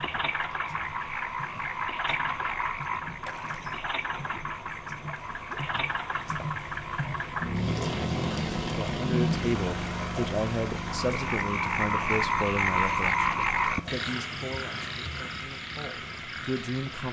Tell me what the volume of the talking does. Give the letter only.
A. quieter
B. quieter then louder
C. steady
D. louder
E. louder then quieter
A.